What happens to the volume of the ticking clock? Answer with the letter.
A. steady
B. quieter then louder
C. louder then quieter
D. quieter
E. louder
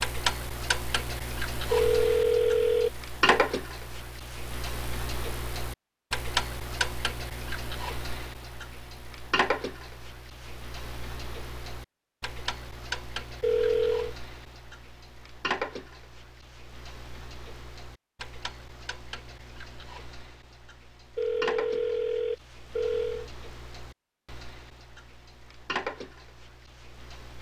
D.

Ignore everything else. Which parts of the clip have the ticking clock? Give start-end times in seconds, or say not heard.
0.0-27.3.